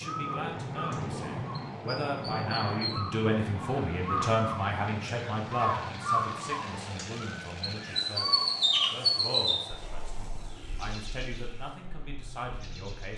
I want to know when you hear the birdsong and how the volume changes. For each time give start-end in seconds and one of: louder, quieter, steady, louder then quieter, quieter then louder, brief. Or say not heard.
0.1-13.1 louder then quieter.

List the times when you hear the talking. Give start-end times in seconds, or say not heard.
0.0-13.1.